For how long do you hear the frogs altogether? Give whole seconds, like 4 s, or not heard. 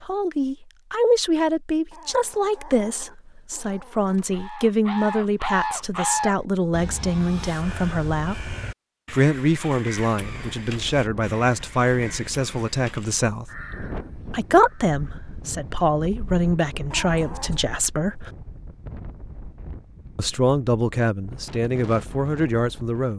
not heard.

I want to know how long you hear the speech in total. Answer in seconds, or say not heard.
20 s.